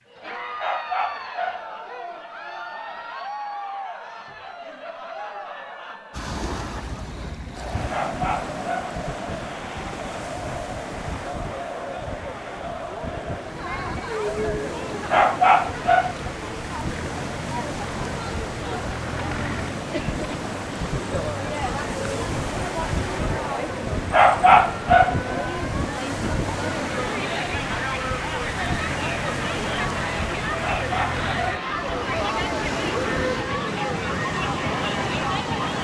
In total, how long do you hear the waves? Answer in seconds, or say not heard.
30 s.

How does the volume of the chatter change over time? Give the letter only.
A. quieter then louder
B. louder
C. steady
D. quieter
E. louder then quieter
B.